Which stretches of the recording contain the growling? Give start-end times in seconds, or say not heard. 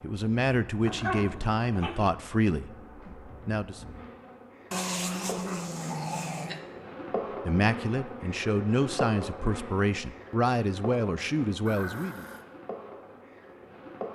0.8-2.1, 4.7-6.6, 11.7-12.4.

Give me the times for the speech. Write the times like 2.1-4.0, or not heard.
0.0-3.8, 7.5-12.2.